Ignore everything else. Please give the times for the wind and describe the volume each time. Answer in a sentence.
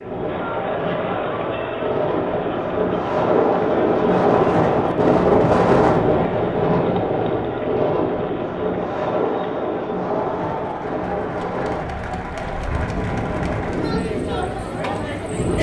You can hear the wind from 0.0 to 15.5 s, getting louder then quieter.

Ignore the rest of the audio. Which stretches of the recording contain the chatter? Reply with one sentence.
The chatter can be heard from 0.0 to 15.5 s.